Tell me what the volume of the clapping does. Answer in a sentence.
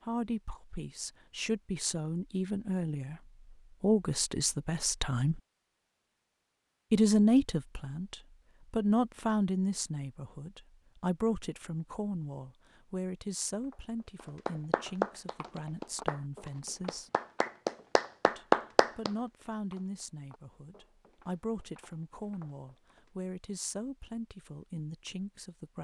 The loudness of the clapping goes down, then up.